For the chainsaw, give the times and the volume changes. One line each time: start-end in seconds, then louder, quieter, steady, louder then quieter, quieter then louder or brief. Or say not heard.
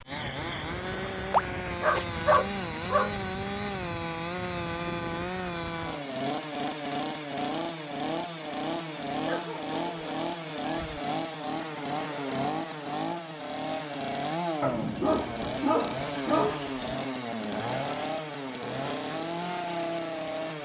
0.0-20.6 steady.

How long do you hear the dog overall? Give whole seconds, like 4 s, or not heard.
6 s.